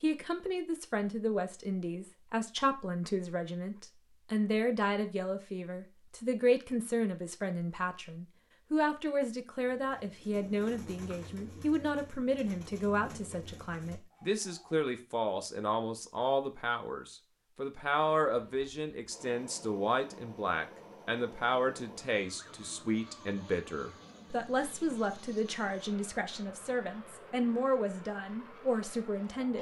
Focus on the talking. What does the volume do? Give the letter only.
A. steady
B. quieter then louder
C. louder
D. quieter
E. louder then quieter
A.